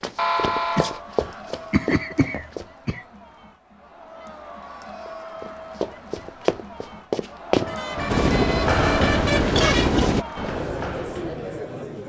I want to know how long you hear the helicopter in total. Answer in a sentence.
The helicopter can be heard for 2 seconds in total.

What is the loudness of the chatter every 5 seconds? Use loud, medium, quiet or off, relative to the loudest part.
medium, loud, loud.